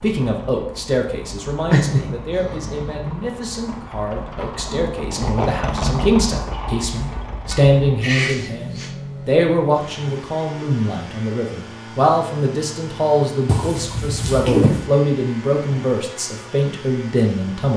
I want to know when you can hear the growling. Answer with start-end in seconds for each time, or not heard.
1.6-3.1, 8.0-8.9, 13.4-14.8.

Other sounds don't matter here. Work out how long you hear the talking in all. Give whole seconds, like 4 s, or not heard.
18 s.